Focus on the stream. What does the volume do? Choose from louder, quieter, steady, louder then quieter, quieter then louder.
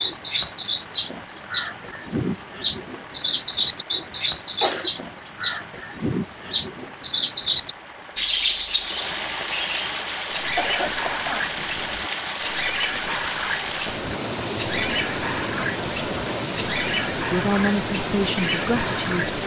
louder.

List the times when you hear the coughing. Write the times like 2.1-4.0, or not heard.
4.2-4.9, 10.6-11.6.